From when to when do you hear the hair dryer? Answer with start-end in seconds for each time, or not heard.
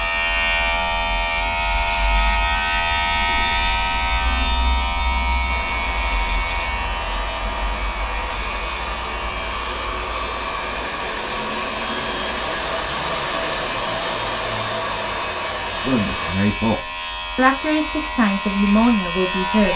5.5-16.4.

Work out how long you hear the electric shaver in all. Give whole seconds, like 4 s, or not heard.
20 s.